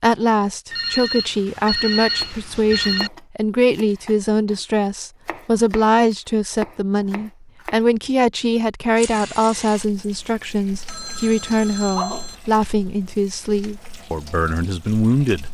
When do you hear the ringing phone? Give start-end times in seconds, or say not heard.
0.7-3.1, 10.8-12.3.